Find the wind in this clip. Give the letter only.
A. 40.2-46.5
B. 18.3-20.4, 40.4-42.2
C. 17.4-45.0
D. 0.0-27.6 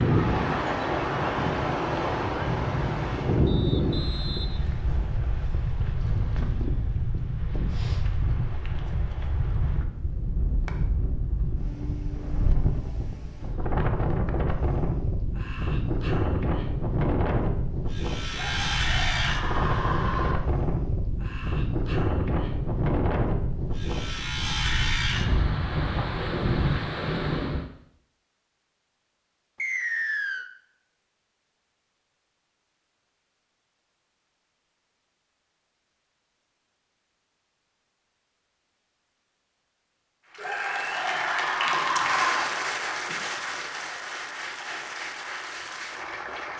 D.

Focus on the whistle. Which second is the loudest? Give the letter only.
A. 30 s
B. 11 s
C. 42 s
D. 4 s
A.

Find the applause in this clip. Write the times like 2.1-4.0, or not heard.
40.2-46.5.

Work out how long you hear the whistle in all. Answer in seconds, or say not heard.
3 s.